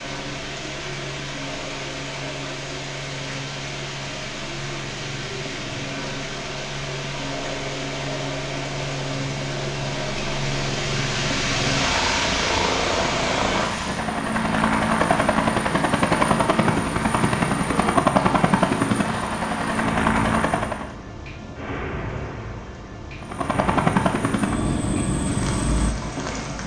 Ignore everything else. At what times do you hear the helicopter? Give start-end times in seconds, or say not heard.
0.0-20.9, 23.2-26.6.